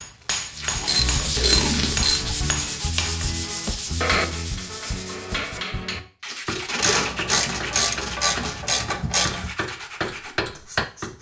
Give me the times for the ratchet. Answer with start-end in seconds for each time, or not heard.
0.8-2.4, 6.8-9.5.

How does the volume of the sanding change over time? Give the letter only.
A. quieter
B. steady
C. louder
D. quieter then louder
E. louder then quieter
A.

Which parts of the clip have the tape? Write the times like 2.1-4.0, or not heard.
0.6-2.0, 6.2-8.6.